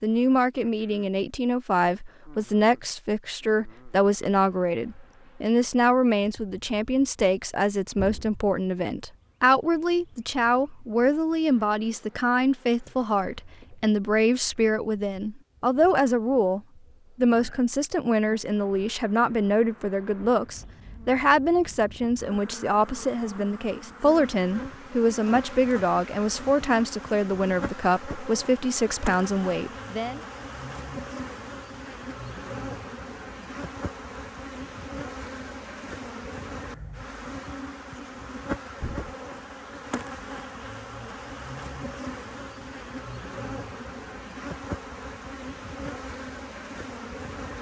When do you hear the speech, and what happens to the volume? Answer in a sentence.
You can hear the speech from 0.0 to 30.2 s, at a steady volume.